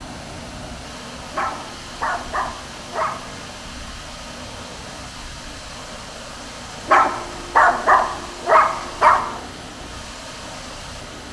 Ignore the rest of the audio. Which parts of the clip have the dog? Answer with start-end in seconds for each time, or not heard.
1.3-3.2, 6.8-9.4.